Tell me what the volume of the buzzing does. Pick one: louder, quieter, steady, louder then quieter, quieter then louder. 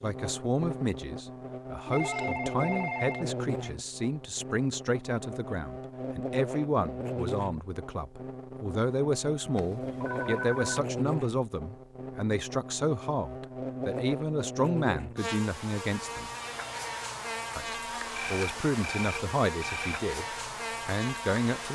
steady.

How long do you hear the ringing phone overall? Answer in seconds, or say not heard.
5 s.